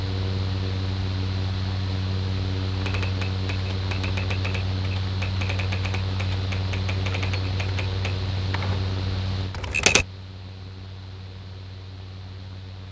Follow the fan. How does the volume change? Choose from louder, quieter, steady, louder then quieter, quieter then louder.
quieter.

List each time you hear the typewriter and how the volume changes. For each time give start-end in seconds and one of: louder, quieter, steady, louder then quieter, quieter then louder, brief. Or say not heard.
2.7-10.1 steady.